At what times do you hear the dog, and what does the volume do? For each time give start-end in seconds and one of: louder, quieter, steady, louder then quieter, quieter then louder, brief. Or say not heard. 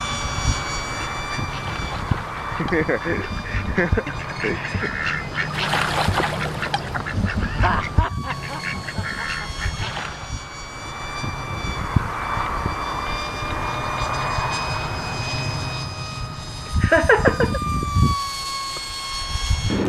not heard.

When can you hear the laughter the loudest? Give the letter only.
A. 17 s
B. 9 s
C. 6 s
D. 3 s
A.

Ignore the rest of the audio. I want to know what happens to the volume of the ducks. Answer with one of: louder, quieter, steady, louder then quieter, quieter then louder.
louder then quieter.